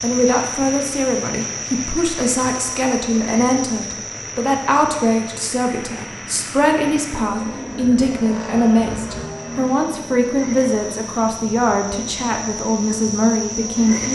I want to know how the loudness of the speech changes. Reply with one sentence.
The loudness of the speech stays about the same.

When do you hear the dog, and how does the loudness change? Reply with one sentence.
You can't hear the dog here.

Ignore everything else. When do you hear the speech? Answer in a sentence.
You can hear the speech from 0.0 to 14.1 s.